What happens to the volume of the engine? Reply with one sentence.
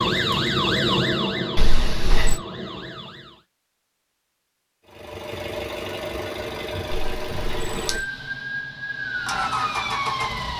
The volume of the engine goes down, then up.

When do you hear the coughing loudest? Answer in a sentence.
The volume of the coughing peaks at 2 seconds.